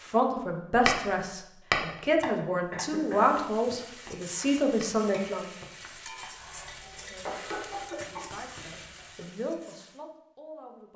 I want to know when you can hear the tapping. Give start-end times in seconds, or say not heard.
0.8-8.6.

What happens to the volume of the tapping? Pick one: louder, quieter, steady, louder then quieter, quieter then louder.
quieter.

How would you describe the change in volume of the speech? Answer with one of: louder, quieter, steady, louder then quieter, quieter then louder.
quieter then louder.